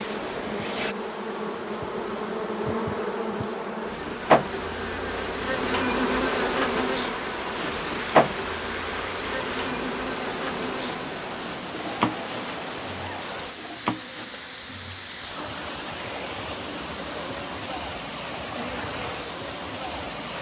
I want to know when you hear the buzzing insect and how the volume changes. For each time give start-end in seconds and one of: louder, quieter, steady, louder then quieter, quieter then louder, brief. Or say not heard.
0.0-20.3 louder then quieter.